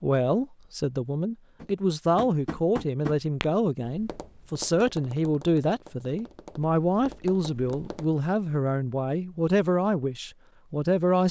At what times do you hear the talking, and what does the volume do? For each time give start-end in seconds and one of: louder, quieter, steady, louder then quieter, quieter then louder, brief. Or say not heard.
0.0-11.2 steady.